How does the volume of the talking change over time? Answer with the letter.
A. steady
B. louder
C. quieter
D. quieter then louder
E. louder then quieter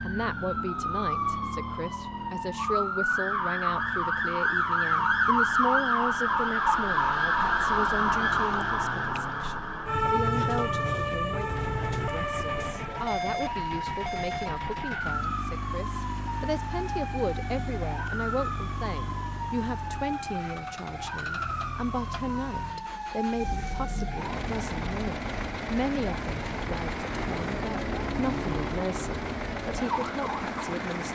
A.